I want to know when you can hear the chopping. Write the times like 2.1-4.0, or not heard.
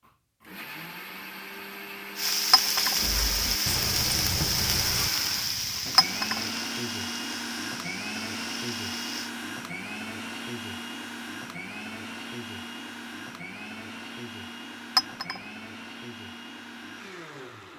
3.0-5.1.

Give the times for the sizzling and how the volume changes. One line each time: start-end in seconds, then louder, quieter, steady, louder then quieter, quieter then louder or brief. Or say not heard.
2.1-9.3 quieter.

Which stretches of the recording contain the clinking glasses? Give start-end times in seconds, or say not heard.
2.5-3.0, 6.0-6.4, 14.9-15.4.